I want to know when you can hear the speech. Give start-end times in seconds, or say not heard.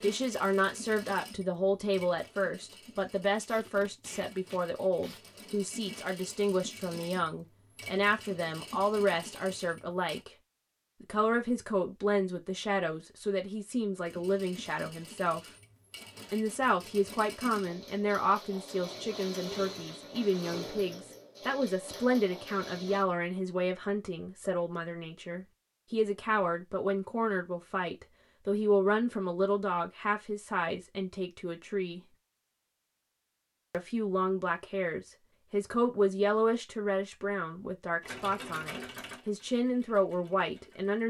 0.0-10.3, 11.0-15.4, 16.3-32.0, 33.7-41.0.